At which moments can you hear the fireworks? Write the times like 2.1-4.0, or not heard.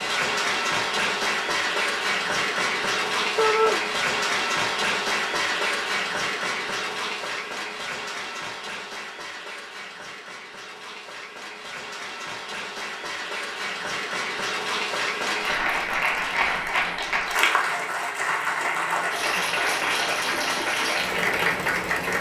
not heard.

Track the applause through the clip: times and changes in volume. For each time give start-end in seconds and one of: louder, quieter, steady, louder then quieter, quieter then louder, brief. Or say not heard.
0.0-22.1 quieter then louder.